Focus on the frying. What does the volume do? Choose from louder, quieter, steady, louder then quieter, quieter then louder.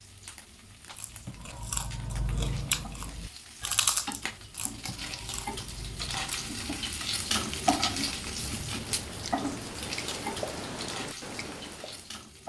louder then quieter.